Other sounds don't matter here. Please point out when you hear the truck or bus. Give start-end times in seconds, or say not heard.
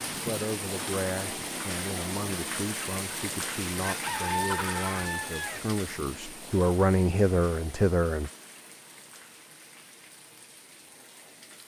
not heard.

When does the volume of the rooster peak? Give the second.
4 s.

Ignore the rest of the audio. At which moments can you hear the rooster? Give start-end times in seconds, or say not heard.
3.9-5.6.